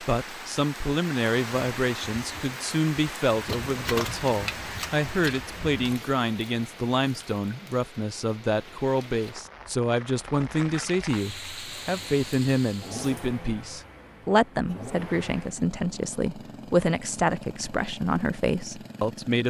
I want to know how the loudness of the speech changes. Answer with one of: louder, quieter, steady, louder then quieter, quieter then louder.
steady.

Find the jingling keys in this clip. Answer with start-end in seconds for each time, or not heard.
3.5-5.8.